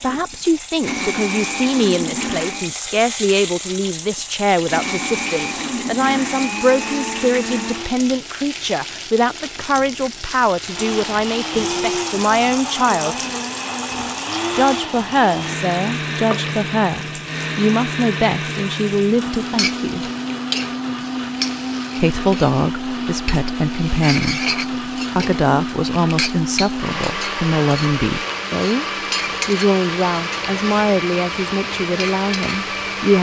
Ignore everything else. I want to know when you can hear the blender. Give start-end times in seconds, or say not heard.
0.0-2.7, 4.2-8.0, 10.7-33.1.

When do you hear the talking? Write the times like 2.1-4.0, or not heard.
0.0-13.2, 14.6-20.1, 21.9-28.9, 29.4-33.1.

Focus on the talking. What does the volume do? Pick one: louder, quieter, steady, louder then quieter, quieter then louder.
steady.